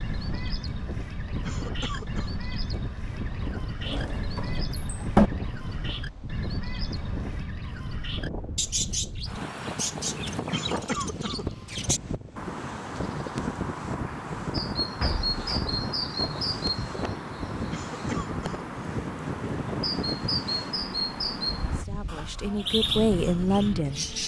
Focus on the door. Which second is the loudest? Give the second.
5 s.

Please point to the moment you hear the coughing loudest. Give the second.
11 s.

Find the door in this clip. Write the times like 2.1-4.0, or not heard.
3.9-5.3, 15.0-15.7.